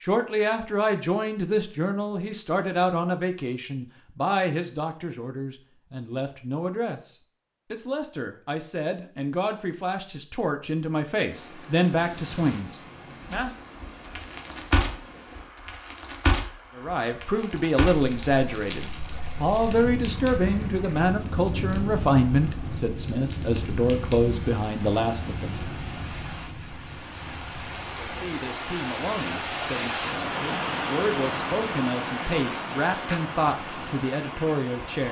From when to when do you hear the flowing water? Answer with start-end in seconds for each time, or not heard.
11.2-35.0.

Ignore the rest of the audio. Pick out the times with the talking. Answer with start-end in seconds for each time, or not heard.
0.0-13.6, 16.8-25.6, 27.8-35.0.